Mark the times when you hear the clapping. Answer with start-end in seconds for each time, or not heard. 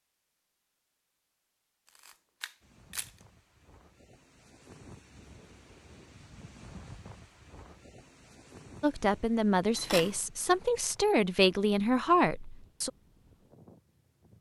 not heard.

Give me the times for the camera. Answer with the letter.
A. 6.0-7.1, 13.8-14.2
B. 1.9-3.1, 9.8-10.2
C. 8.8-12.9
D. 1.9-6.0
B.